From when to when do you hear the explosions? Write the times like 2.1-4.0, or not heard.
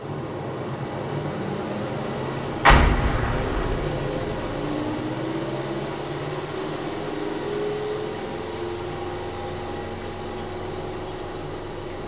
2.6-3.9.